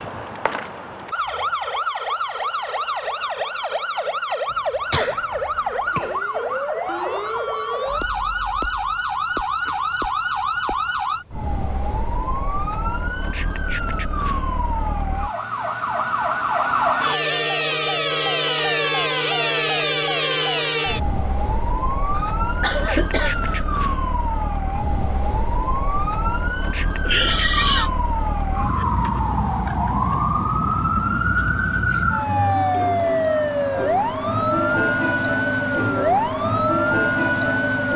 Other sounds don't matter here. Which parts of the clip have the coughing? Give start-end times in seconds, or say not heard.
4.5-6.2, 22.1-23.6, 27.1-27.9.